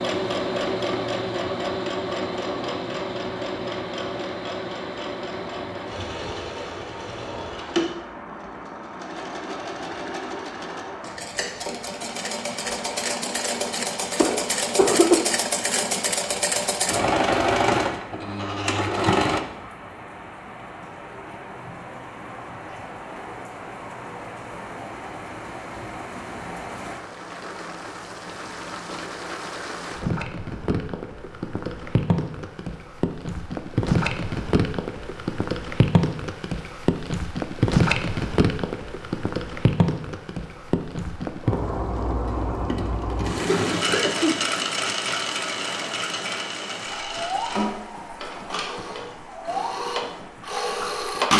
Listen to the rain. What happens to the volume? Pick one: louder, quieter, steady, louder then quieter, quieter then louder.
louder then quieter.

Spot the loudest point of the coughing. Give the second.
15 s.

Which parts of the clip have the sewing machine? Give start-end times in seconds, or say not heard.
0.0-19.4, 42.2-51.3.